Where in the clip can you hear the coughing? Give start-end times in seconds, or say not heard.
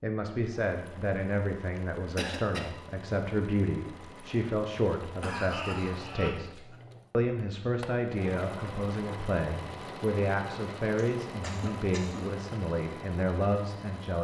1.8-2.7, 5.2-6.8, 10.9-12.3.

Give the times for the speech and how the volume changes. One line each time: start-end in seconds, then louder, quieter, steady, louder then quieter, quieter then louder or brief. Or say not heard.
0.0-14.1 steady.